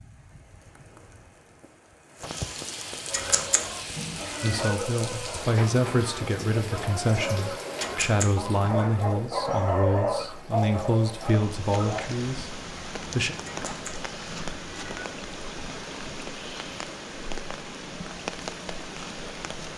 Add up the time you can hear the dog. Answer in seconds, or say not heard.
9 s.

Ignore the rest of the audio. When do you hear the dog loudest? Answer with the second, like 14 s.
10 s.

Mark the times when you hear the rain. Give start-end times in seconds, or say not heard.
0.0-19.7.